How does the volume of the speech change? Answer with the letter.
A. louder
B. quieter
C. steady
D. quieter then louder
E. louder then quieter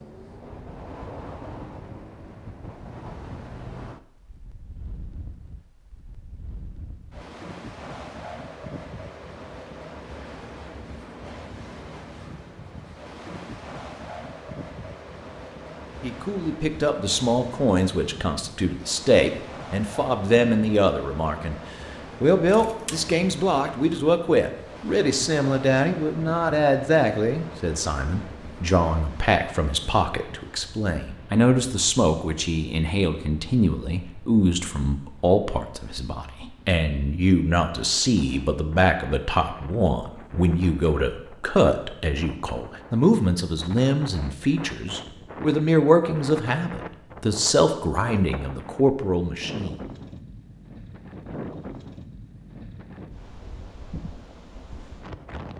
C.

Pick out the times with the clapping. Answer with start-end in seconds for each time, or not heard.
not heard.